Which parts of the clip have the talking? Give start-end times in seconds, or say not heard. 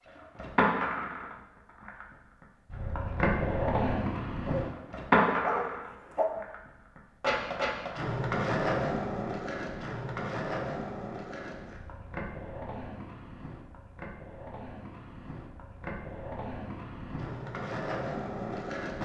not heard.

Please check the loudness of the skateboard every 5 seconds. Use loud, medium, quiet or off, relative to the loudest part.
loud, loud, medium, medium.